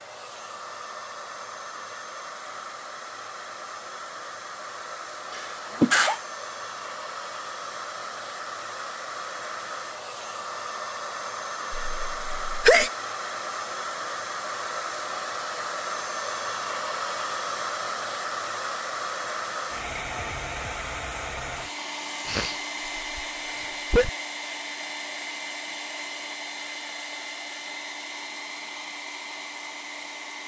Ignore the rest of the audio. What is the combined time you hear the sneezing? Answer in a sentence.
You can hear the sneezing for 4 seconds altogether.